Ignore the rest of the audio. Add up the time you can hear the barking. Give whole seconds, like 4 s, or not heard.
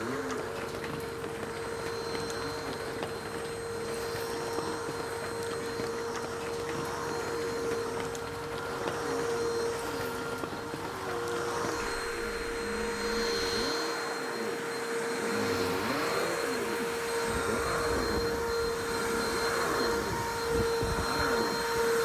not heard.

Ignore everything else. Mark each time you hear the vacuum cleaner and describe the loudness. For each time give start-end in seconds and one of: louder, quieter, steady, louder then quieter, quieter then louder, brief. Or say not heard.
0.0-21.9 louder.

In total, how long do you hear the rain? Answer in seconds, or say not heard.
22 s.